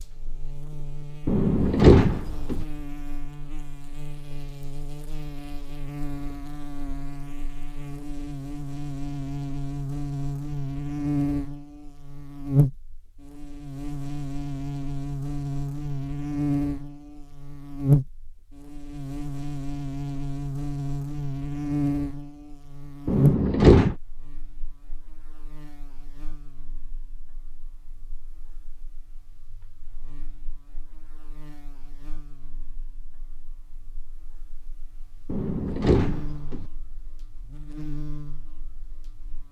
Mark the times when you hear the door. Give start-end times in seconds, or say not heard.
1.2-2.6, 23.1-23.9, 35.2-36.6.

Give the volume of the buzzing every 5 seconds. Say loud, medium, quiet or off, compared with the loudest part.
quiet, medium, loud, loud, loud, quiet, quiet, quiet.